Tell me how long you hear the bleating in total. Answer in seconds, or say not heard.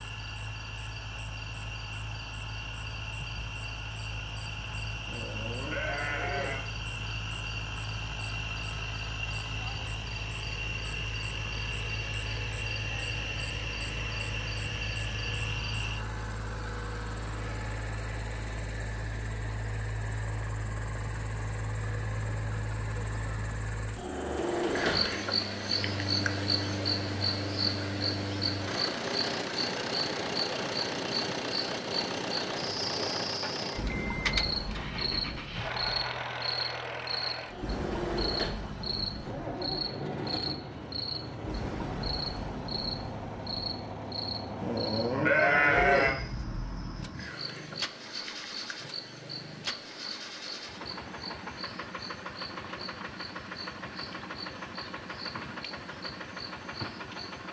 3 s.